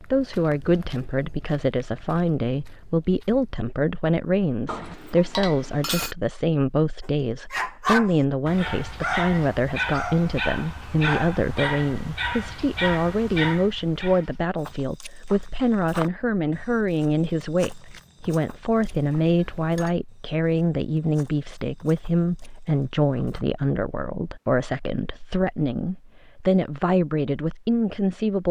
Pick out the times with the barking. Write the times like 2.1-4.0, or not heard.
7.0-14.4.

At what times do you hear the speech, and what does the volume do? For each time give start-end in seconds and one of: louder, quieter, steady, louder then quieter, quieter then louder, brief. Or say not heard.
0.0-28.4 steady.